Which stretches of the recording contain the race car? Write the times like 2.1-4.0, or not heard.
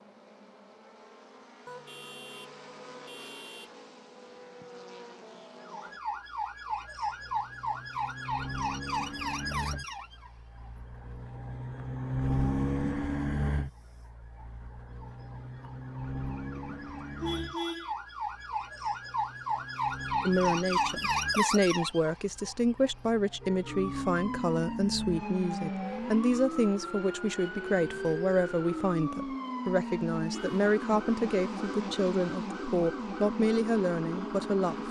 0.0-34.8.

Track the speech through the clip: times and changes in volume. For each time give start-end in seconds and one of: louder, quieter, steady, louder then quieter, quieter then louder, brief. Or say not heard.
20.2-34.8 steady.